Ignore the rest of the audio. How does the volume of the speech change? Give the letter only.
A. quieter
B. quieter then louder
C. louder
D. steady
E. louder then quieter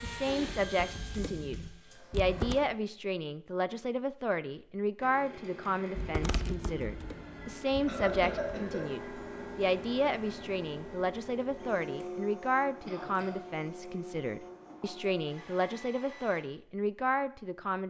D.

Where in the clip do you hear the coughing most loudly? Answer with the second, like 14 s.
8 s.